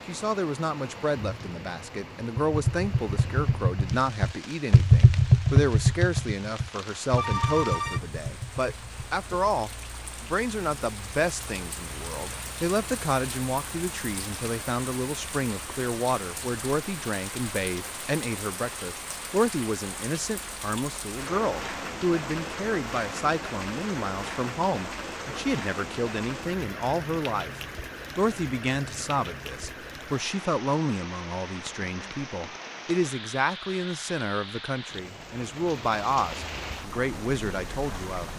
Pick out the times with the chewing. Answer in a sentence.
You can't hear the chewing here.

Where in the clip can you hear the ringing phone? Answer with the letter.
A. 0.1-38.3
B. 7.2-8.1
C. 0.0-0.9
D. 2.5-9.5
B.